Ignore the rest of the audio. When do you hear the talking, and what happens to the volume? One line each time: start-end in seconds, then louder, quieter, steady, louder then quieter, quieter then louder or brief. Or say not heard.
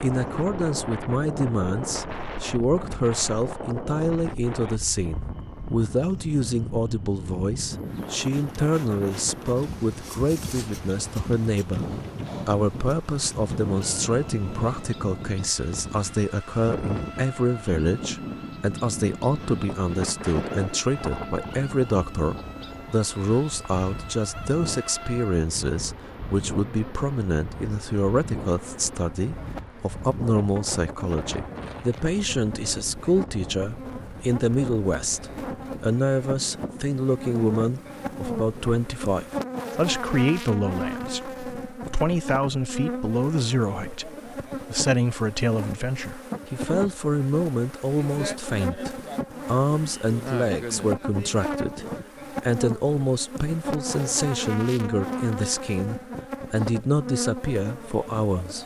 0.0-58.6 steady.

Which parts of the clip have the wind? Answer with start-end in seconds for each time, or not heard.
0.0-38.9.